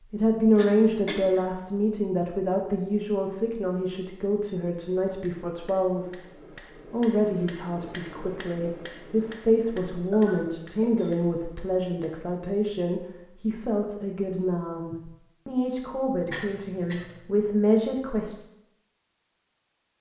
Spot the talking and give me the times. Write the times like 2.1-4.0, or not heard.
0.1-6.2, 6.9-18.4.